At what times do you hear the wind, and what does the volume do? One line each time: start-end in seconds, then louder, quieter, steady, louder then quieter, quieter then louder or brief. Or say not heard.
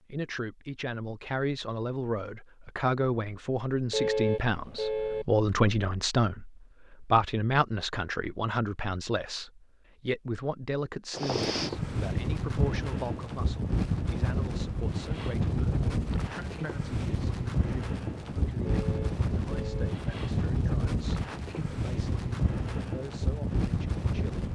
11.1-24.4 steady.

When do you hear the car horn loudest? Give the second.
4 s.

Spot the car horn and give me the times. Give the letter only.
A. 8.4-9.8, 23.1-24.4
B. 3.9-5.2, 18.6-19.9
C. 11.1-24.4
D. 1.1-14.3
B.